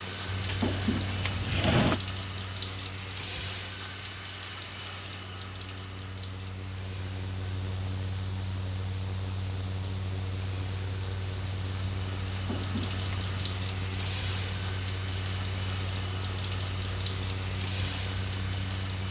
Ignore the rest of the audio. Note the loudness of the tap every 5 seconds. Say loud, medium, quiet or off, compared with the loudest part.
loud, medium, loud, loud.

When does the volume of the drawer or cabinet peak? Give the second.
2 s.